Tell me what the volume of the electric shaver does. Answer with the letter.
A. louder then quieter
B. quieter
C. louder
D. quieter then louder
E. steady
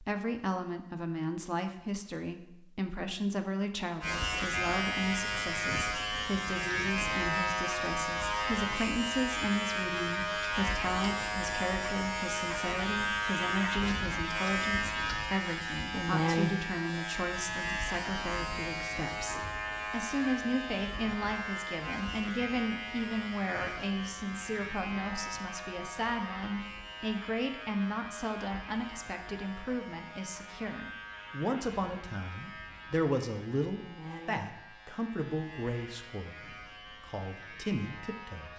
B.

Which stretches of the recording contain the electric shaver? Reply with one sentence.
The electric shaver can be heard from 4.0 to 38.5 s.